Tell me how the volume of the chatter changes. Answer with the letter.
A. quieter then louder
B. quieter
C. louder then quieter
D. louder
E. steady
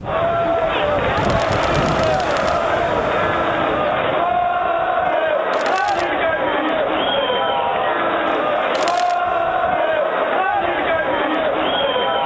E.